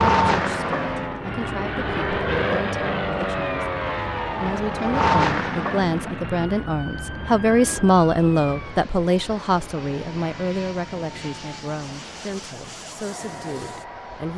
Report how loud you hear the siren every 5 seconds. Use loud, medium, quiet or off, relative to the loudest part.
loud, loud, quiet.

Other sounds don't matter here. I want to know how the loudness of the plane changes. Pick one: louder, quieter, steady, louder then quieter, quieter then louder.
quieter.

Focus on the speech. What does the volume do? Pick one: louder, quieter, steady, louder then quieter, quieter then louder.
louder then quieter.